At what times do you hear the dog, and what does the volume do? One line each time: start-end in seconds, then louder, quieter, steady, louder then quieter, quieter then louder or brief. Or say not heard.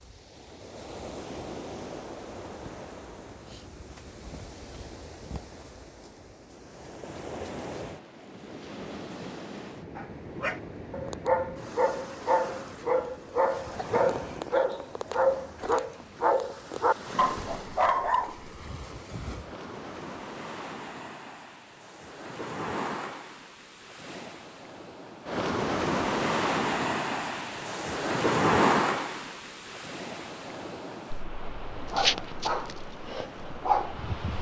9.9-18.5 steady
31.8-34.3 brief.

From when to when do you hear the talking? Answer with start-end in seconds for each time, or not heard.
not heard.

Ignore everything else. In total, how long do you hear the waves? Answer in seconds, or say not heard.
34 s.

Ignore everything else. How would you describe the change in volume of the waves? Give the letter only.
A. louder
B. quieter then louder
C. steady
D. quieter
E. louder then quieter
A.